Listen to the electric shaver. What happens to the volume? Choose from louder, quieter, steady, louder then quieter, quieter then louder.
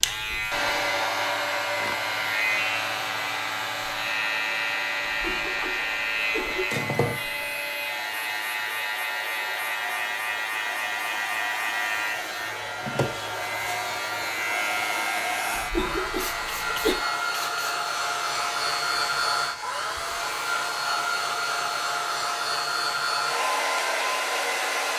quieter.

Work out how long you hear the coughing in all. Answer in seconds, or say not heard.
3 s.